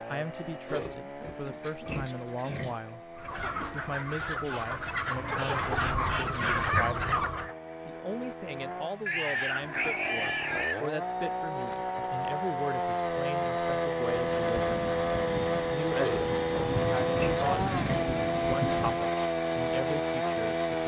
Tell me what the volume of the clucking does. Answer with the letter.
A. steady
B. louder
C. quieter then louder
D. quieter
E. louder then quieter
B.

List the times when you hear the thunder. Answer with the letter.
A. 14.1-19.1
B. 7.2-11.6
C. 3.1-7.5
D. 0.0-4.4
A.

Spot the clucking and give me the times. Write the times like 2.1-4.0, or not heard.
3.1-7.5.